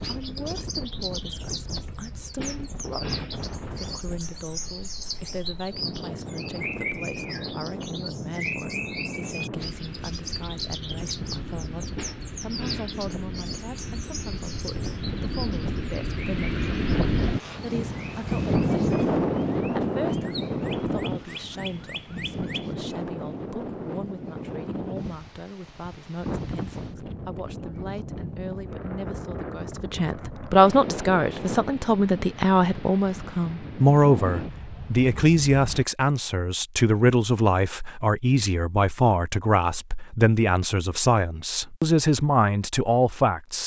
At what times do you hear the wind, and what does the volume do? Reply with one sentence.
You can hear the wind from 0.0 to 35.9 s, getting louder then quieter.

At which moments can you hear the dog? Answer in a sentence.
You can't hear the dog here.